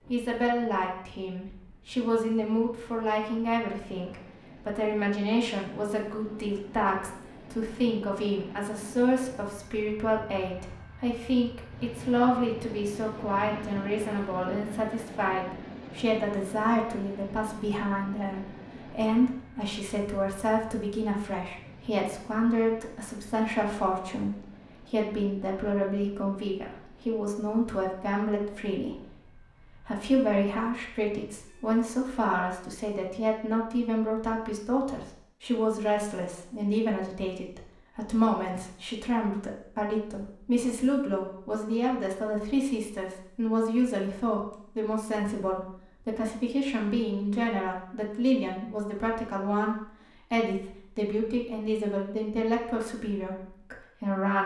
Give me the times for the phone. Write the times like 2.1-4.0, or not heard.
not heard.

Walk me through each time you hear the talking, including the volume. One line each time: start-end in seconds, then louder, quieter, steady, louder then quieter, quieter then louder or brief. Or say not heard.
0.1-54.4 steady.